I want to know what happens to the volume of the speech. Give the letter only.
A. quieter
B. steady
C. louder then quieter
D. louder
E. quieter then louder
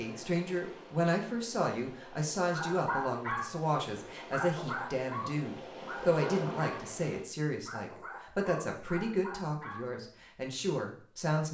B.